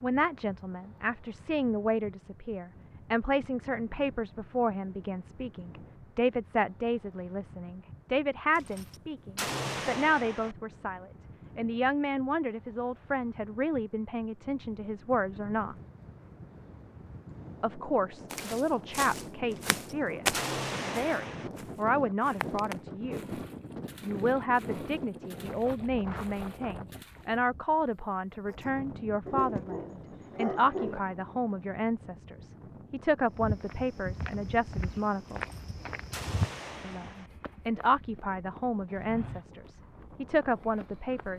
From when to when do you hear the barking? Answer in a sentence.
You can hear the barking from 29.2 to 31.0 s.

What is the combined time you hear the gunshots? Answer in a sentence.
You can hear the gunshots for 6 seconds altogether.